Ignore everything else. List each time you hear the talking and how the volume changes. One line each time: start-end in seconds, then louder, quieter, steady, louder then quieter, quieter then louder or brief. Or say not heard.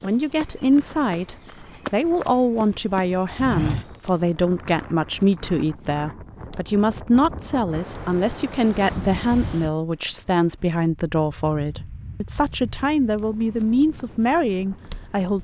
0.0-15.3 steady.